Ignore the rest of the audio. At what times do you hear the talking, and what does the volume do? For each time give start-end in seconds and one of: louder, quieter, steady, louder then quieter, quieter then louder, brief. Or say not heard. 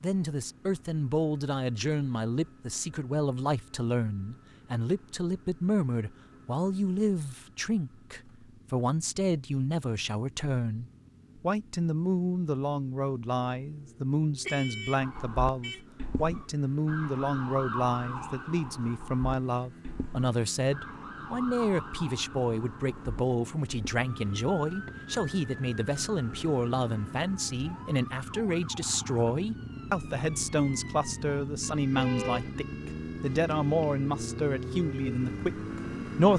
0.0-36.3 steady.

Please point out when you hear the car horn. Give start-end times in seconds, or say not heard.
14.4-15.8, 31.9-32.5.